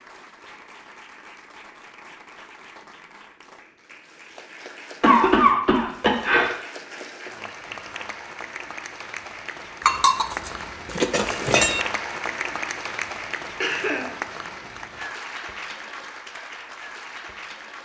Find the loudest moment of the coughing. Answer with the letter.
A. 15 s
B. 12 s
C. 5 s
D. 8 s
C.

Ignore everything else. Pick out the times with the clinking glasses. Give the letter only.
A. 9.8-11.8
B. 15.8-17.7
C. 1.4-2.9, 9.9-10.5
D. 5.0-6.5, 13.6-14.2
A.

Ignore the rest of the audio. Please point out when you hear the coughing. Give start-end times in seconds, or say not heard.
5.0-6.5, 13.6-14.2.